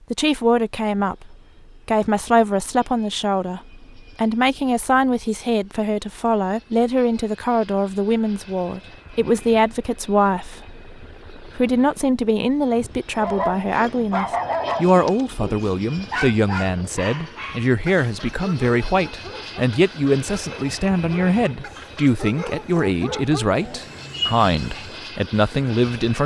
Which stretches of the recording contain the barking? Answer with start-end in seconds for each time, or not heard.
13.2-25.0.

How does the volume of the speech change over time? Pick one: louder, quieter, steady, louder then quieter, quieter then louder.
steady.